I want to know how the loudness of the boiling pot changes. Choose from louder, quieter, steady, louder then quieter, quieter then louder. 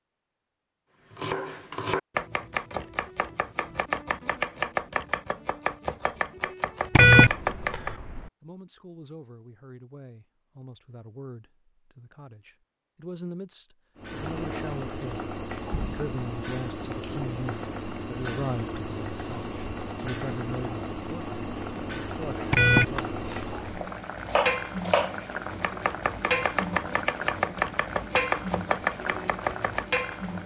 steady.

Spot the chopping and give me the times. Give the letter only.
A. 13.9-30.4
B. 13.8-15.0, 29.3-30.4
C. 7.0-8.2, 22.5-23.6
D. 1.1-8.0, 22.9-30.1
D.